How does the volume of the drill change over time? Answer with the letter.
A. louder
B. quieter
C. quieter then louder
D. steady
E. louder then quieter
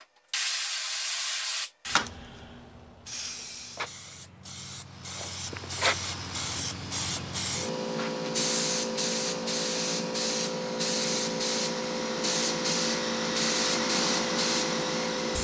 A.